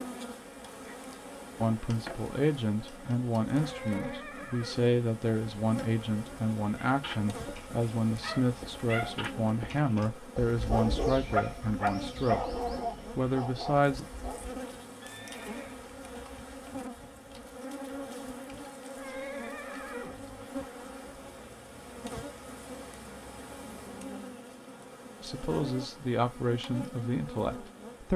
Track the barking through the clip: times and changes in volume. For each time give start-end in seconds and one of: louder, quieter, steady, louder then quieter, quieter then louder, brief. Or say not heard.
6.8-14.7 louder then quieter.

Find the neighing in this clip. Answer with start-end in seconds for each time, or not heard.
3.6-4.8, 15.0-15.8, 18.9-20.4.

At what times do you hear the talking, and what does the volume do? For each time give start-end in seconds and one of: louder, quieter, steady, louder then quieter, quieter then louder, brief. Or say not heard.
1.6-14.0 steady
25.2-28.1 brief.